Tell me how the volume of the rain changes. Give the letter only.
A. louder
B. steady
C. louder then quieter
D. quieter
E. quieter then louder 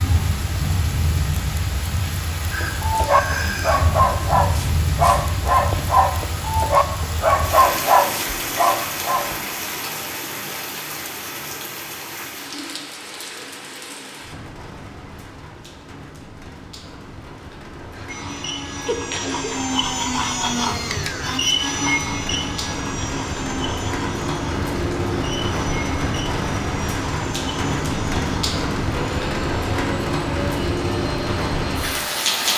E.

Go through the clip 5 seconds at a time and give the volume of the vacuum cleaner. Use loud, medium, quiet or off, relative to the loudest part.
off, off, off, loud, loud, medium, medium.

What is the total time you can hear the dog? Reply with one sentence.
You can hear the dog for 7 seconds altogether.